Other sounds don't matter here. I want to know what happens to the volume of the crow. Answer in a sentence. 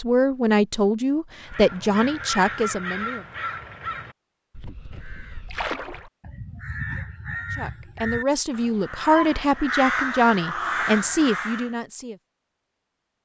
The volume of the crow goes down, then up.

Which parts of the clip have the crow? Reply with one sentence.
The crow can be heard from 1.4 to 11.7 s.